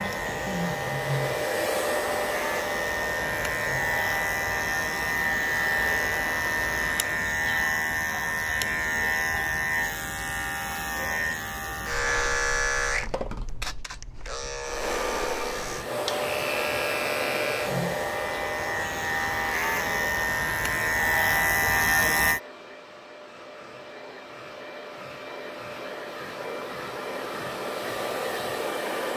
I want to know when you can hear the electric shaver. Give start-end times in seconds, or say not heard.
0.0-22.4.